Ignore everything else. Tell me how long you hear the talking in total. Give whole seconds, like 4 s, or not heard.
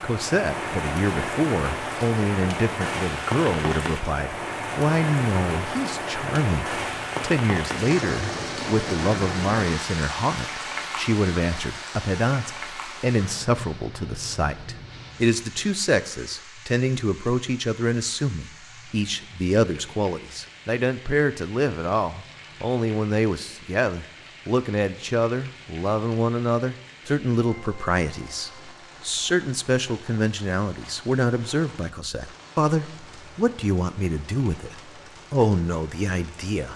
37 s.